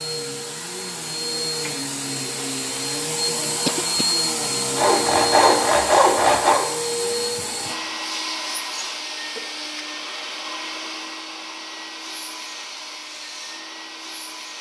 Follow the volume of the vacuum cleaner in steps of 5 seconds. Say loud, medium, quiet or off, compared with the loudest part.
loud, loud, medium.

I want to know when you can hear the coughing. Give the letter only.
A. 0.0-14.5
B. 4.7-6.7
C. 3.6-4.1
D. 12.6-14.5
C.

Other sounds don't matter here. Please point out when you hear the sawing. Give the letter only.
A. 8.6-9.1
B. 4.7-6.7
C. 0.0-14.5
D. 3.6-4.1
B.